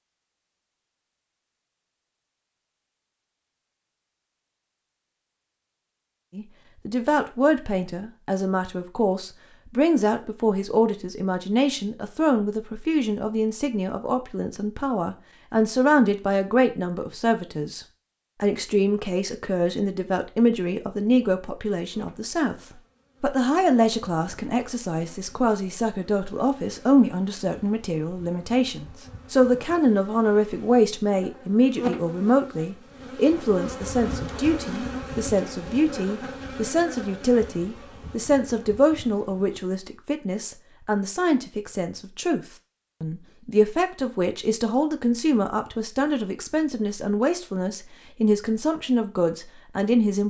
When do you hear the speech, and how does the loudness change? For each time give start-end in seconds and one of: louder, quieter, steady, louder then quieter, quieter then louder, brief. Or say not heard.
6.3-50.2 steady.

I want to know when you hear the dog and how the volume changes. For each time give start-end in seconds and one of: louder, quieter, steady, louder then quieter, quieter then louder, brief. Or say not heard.
not heard.